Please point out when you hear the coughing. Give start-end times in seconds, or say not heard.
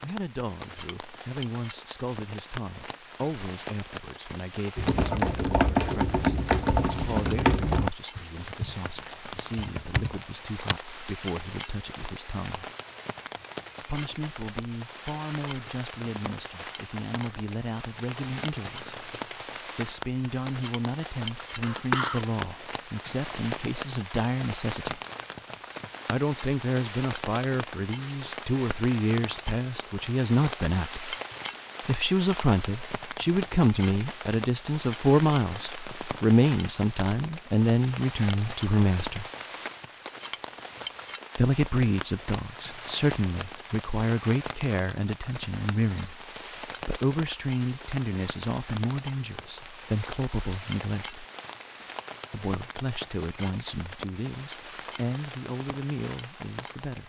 21.6-22.2.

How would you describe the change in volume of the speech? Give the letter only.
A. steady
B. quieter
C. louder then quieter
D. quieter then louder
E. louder
C.